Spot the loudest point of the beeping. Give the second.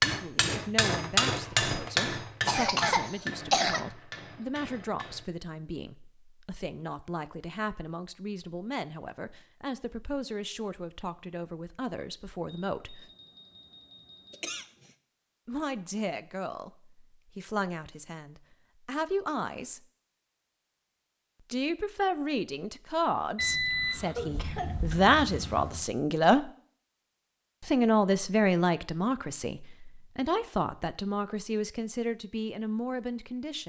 24 s.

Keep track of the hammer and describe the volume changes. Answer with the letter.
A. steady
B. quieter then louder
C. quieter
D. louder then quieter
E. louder
C.